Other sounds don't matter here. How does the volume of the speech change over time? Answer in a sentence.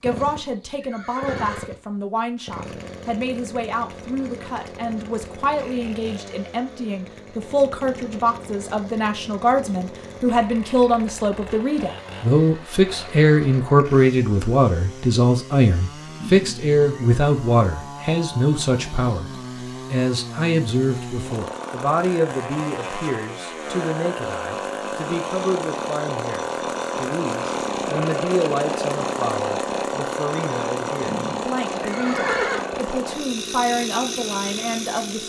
The loudness of the speech goes up, then down.